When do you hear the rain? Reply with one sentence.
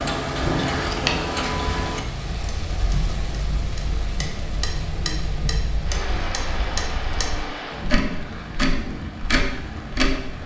The rain can be heard from 0.0 to 10.4 s.